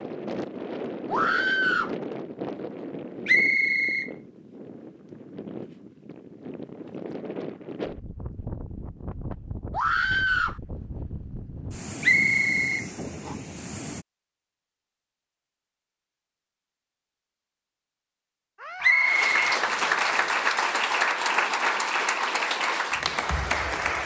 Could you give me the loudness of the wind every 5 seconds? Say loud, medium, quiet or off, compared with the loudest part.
loud, loud, loud, off, off.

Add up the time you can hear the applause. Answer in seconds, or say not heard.
5 s.